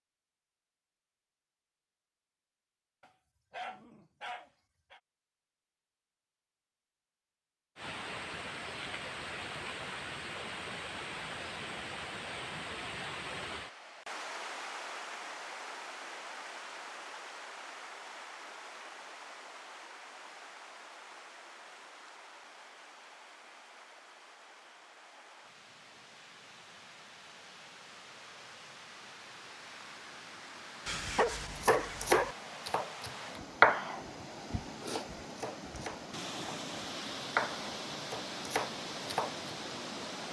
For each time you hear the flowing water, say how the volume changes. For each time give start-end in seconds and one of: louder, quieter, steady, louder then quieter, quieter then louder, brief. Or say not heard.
7.8-40.2 quieter then louder.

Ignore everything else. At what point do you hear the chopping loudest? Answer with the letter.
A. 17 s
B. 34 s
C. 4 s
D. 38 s
B.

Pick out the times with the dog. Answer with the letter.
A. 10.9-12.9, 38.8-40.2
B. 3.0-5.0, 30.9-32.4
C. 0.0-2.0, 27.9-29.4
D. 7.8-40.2
B.